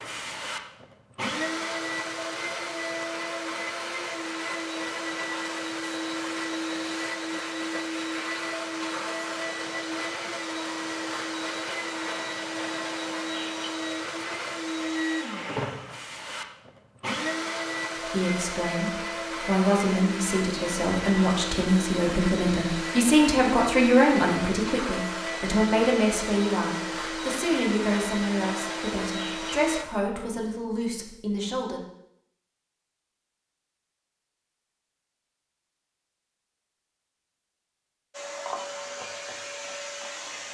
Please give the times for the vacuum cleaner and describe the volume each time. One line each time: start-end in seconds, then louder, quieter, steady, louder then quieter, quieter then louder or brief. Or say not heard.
0.0-29.9 steady
38.1-40.4 brief.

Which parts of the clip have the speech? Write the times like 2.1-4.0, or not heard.
17.9-31.8.